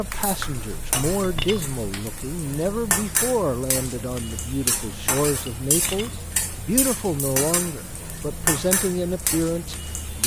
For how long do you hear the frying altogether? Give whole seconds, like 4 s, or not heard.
10 s.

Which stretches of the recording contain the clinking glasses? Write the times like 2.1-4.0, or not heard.
0.9-1.7, 5.5-6.2.